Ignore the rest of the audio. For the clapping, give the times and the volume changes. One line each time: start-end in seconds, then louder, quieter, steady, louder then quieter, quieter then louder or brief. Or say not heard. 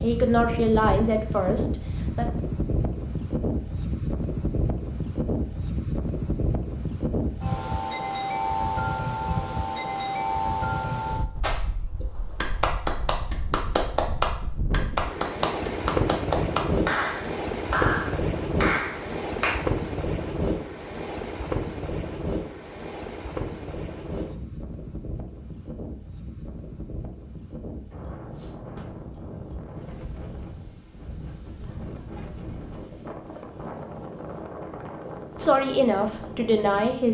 11.4-19.6 steady.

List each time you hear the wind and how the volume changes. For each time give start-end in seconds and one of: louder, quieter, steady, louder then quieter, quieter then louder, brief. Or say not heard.
0.0-37.0 quieter.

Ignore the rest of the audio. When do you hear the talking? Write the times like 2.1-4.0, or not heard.
0.0-2.2, 35.4-37.0.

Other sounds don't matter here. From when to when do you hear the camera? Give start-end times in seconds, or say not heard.
not heard.